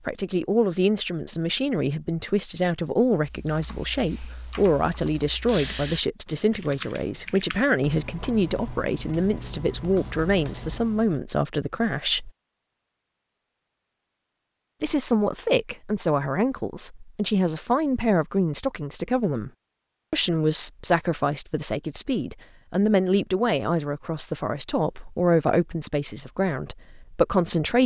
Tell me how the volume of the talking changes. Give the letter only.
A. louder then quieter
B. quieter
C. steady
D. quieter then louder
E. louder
C.